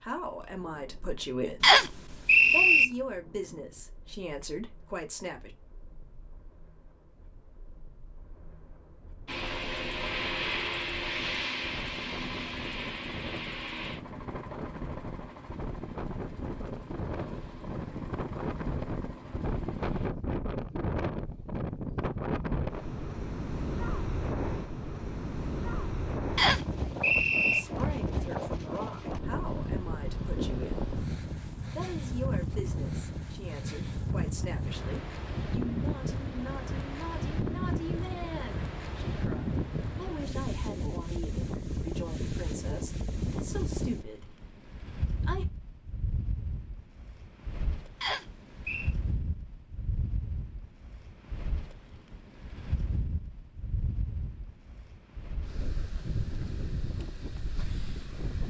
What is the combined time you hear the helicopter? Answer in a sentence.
You can hear the helicopter for 11 seconds altogether.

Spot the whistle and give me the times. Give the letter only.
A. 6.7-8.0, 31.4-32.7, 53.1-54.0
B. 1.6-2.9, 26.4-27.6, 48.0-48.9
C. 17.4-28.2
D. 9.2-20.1
B.